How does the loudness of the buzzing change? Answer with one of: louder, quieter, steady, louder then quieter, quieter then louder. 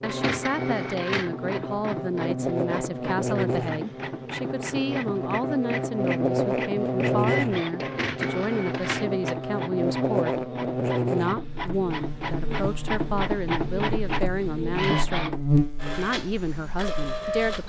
steady.